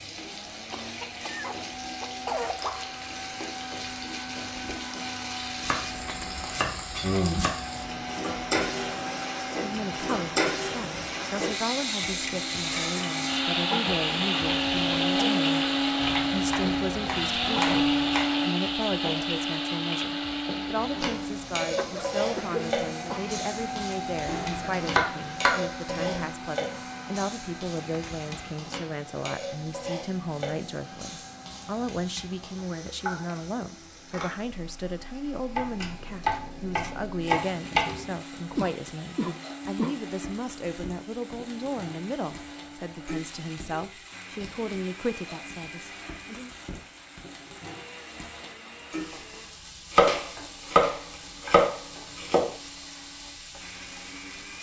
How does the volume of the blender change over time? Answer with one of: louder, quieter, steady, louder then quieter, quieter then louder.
louder then quieter.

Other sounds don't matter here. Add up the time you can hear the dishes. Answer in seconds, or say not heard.
not heard.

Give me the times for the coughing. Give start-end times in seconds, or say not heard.
0.7-2.6, 21.6-23.4, 38.5-40.0.